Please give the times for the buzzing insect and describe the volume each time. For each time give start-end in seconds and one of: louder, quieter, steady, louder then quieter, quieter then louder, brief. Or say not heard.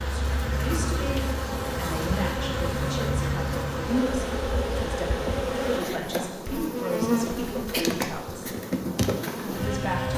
0.0-10.1 steady.